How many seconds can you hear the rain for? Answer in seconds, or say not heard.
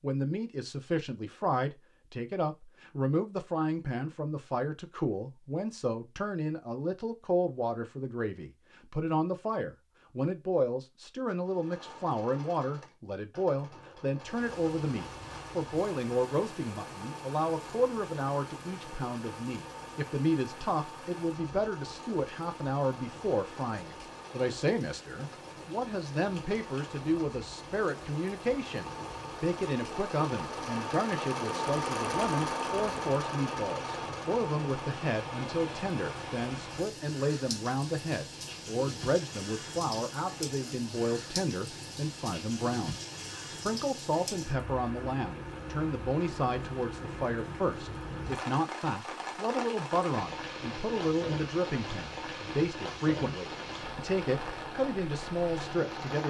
42 s.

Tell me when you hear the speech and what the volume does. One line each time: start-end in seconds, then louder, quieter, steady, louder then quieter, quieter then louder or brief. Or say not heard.
0.0-56.2 steady.